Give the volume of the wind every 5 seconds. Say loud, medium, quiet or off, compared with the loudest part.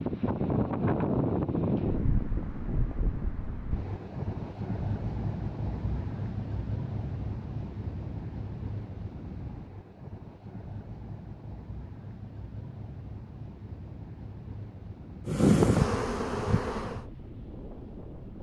loud, medium, quiet, quiet.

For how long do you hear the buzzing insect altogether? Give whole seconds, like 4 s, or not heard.
2 s.